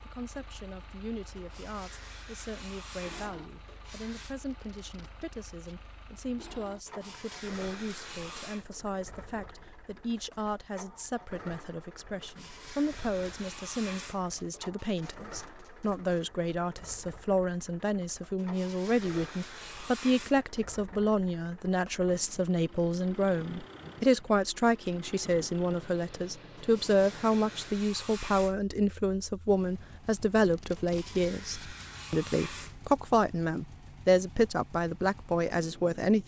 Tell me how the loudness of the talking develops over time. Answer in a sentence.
The loudness of the talking goes up.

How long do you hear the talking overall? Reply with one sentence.
You can hear the talking for 36 seconds altogether.